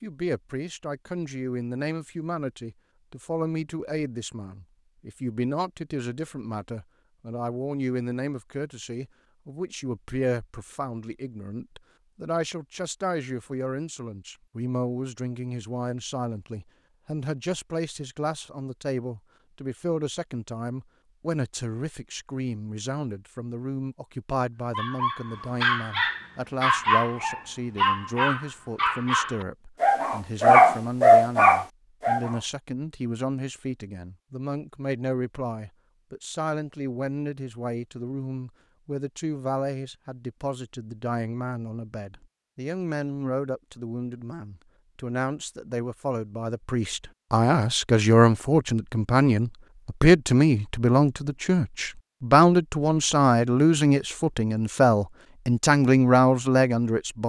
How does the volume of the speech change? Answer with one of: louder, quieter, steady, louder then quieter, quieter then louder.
louder.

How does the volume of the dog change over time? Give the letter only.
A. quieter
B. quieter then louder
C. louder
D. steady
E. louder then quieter
C.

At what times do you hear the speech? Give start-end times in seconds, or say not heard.
0.0-57.2.